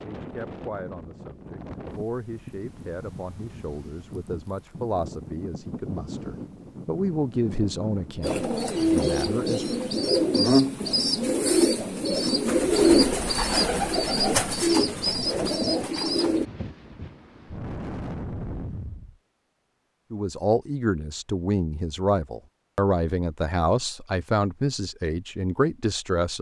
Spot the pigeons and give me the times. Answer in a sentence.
The pigeons can be heard from 8.2 to 16.4 s.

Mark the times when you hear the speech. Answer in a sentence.
The speech can be heard from 0.0 to 9.8 s and from 20.1 to 26.3 s.